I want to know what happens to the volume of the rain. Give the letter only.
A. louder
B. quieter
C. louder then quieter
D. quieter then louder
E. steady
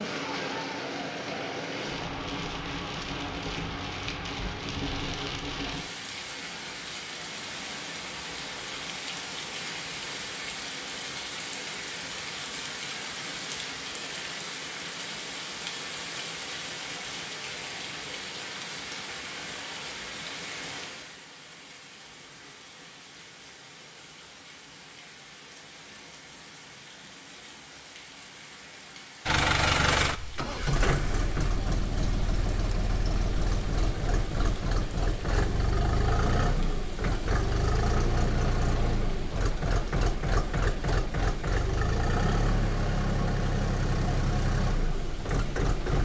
B.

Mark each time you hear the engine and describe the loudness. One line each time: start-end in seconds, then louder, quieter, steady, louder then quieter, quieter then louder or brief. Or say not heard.
29.2-46.0 steady.